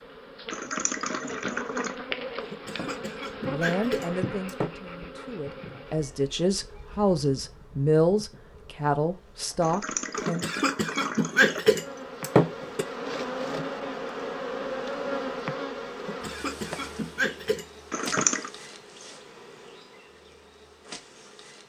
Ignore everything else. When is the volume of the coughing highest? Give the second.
12 s.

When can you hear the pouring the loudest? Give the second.
18 s.